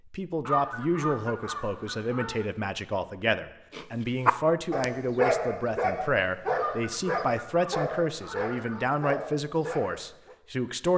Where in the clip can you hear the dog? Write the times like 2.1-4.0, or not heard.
3.7-10.3.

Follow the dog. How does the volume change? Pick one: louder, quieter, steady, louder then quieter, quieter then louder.
quieter.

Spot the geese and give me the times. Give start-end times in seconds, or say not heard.
0.5-2.5, 6.5-8.9.